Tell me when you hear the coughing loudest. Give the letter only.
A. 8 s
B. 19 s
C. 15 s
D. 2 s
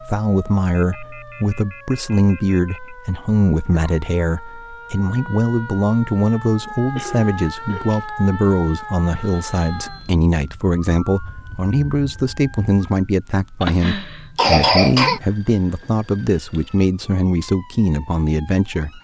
C.